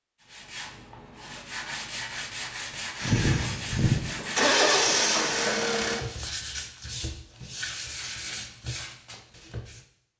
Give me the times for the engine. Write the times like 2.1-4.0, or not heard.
3.0-6.0.